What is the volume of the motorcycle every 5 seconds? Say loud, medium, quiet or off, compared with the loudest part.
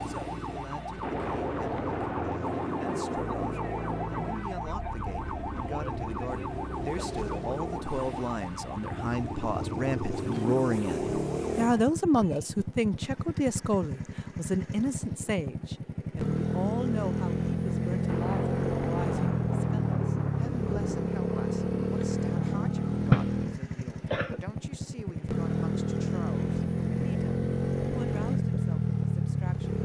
medium, medium, medium, loud, loud, loud.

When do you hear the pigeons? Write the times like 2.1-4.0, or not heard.
not heard.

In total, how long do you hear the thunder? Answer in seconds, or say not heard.
8 s.